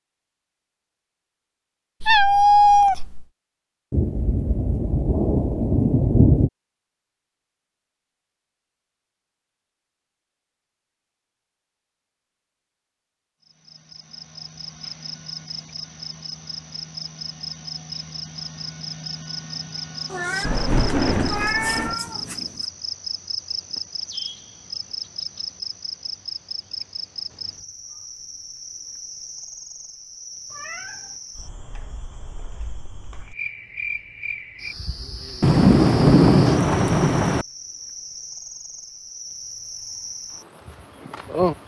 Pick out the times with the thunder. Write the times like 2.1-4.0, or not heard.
3.9-6.5, 20.4-21.9, 35.4-37.5.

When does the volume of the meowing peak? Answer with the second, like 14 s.
3 s.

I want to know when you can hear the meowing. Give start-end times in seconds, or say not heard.
2.0-3.2, 20.1-22.6, 30.5-31.1.